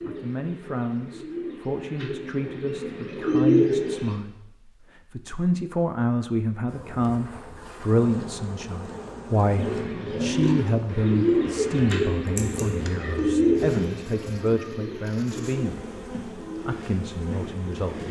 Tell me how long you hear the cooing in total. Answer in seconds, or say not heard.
13 s.